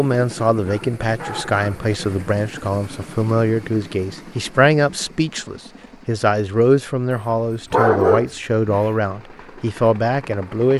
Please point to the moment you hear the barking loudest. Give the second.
8 s.